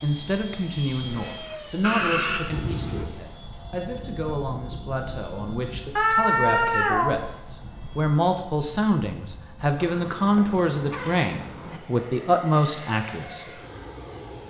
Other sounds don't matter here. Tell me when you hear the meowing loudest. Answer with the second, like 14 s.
6 s.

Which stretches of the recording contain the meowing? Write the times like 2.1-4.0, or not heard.
1.8-3.0, 6.0-7.2, 9.8-11.8.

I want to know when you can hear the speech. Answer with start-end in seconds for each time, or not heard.
0.0-13.5.